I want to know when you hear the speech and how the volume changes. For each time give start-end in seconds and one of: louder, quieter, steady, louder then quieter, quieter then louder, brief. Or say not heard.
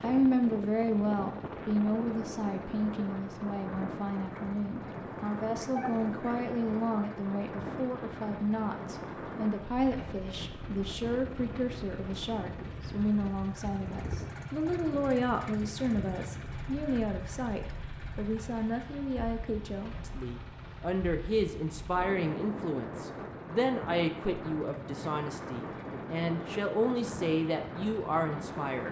0.0-28.8 steady.